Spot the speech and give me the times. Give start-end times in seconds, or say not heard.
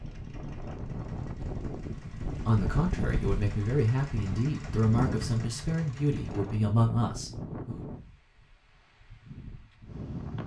2.5-7.8.